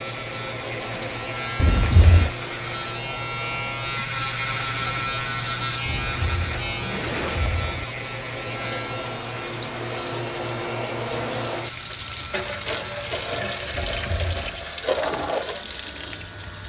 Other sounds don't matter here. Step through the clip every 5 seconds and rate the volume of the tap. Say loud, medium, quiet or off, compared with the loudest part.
medium, medium, loud, loud.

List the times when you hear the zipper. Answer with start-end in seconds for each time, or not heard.
1.6-2.3, 5.8-7.8, 13.7-14.6.